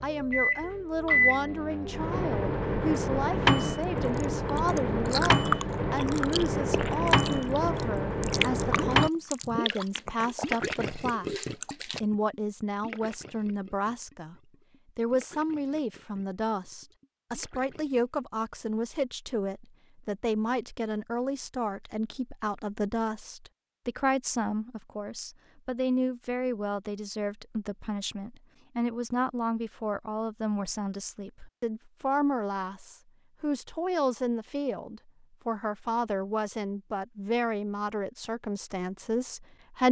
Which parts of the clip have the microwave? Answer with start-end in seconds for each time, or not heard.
0.0-9.1.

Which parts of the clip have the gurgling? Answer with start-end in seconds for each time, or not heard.
8.7-18.2.